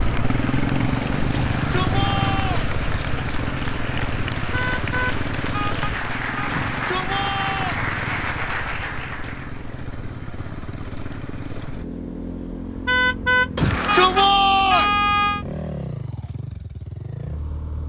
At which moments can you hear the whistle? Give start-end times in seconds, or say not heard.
not heard.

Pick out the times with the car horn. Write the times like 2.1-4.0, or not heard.
4.5-6.5, 12.8-15.4.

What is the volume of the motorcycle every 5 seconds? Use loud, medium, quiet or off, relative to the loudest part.
loud, medium, medium, medium.